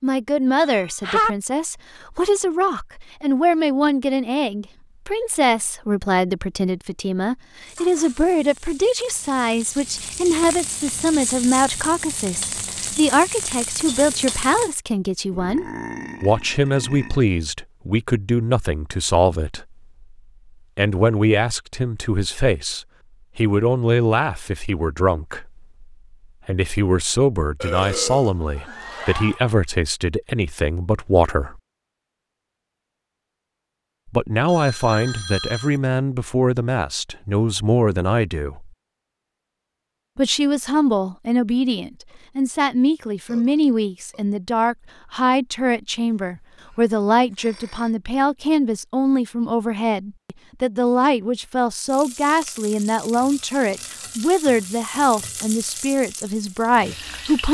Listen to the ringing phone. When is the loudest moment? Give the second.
1 s.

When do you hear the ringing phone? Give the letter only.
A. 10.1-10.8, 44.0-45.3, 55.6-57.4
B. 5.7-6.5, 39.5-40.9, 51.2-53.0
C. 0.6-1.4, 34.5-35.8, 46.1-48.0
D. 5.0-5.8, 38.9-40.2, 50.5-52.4
C.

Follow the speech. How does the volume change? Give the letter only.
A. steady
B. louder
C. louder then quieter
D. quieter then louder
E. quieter
A.